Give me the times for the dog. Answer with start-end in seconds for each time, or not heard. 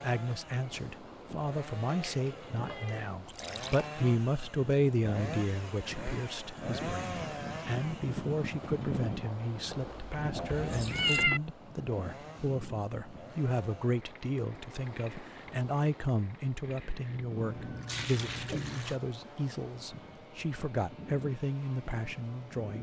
not heard.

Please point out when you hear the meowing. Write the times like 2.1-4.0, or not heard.
1.9-3.1, 9.7-11.4, 17.6-18.8.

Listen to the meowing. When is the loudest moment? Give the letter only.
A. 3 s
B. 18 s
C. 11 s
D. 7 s
C.